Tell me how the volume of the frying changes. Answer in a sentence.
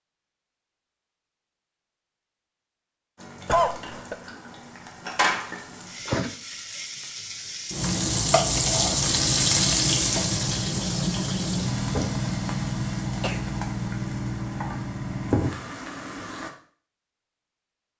The loudness of the frying goes up, then down.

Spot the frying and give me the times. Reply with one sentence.
You can hear the frying from 3.1 to 16.5 s.